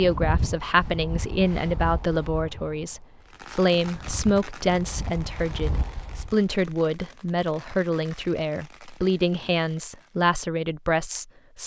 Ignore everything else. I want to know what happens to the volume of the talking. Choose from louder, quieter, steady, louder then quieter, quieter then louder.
steady.